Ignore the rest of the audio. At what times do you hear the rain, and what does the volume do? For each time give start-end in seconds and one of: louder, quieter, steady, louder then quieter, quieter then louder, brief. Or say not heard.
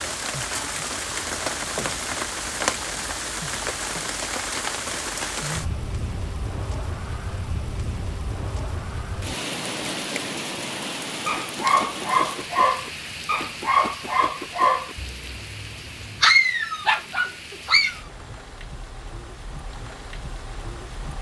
0.0-21.1 quieter.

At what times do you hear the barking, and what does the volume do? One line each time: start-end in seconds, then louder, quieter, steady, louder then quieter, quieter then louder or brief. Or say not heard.
11.2-18.0 steady.